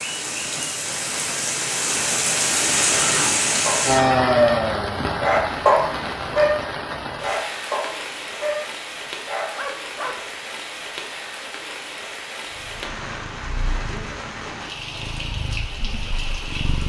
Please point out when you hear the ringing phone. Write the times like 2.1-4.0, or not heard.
not heard.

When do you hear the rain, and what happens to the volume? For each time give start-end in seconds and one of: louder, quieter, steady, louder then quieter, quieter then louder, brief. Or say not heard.
0.0-16.8 quieter.